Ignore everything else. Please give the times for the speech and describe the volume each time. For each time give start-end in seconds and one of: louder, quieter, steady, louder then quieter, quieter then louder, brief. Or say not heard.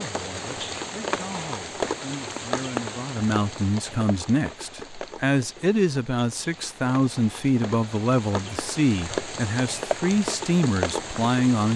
0.0-11.7 louder.